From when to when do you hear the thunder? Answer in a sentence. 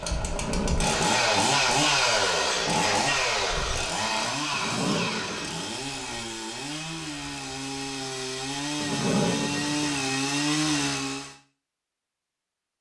You can't hear the thunder here.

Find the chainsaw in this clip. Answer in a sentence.
The chainsaw can be heard from 0.0 to 11.3 s.